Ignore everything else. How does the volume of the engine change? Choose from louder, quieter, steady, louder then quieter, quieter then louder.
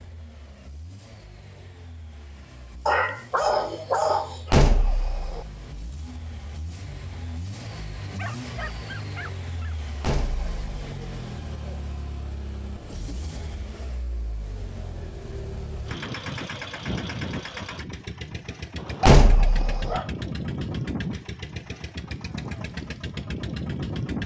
louder.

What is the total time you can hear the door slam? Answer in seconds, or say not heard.
3 s.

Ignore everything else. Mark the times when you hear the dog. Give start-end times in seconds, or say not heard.
2.9-4.5, 8.2-9.8, 18.8-20.1.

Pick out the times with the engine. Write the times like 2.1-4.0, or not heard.
0.0-24.2.